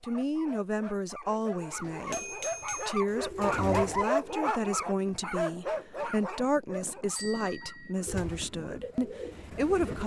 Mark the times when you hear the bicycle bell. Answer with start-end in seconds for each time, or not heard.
1.8-3.0, 7.2-8.0.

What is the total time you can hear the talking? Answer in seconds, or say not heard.
10 s.